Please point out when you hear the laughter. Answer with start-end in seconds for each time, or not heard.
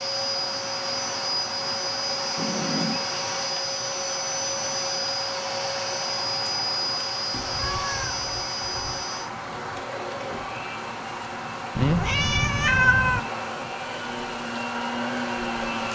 not heard.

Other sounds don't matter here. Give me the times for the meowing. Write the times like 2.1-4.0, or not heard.
2.4-3.0, 7.3-9.0, 11.8-13.2.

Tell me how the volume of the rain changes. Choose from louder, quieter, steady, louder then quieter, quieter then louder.
steady.